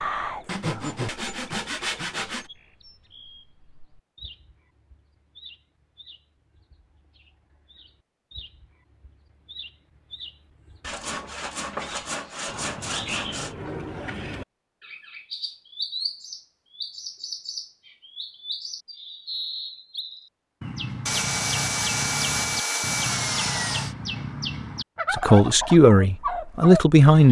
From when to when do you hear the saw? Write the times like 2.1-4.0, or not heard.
0.5-2.5, 10.8-13.6, 21.1-23.9.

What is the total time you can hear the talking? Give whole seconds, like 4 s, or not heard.
2 s.